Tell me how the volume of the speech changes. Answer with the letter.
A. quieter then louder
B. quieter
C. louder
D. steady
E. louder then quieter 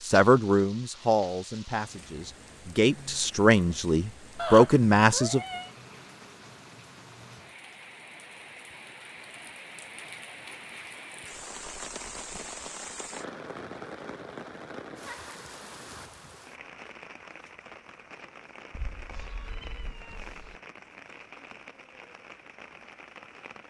A.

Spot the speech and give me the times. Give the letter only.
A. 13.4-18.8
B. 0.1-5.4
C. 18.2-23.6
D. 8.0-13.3
B.